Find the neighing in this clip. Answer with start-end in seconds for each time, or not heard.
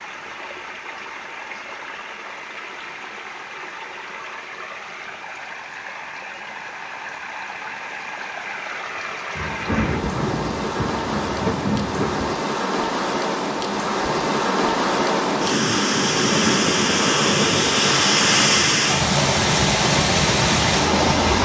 not heard.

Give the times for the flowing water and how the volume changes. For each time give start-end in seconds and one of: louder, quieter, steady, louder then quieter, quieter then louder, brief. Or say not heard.
0.0-21.4 louder.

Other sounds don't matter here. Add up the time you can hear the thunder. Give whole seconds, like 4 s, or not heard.
3 s.